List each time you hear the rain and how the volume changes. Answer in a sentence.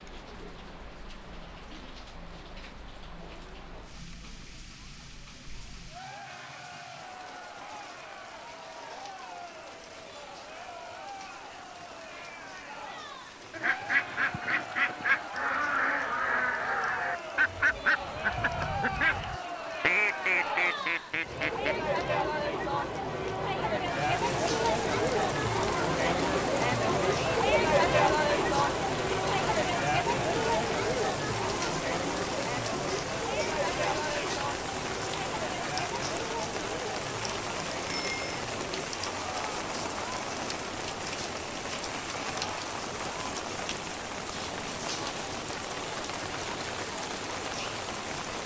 The rain can be heard from 0.0 to 48.4 s, getting louder.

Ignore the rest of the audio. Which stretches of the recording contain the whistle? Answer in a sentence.
The whistle can't be heard in this clip.